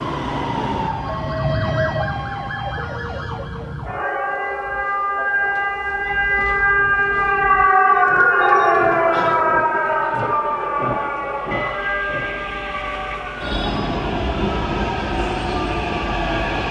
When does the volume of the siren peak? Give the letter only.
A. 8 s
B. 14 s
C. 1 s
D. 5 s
A.